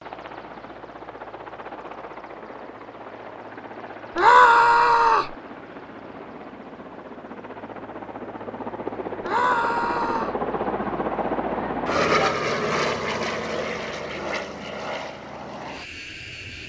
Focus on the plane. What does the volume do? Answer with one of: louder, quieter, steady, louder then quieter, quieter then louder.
louder then quieter.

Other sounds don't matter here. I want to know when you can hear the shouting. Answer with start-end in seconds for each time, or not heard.
4.2-5.3, 9.2-10.3.